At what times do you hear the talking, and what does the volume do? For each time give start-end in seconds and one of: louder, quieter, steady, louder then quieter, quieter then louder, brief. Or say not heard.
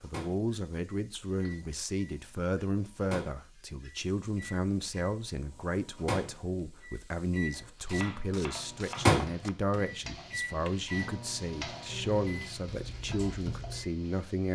0.0-14.5 steady.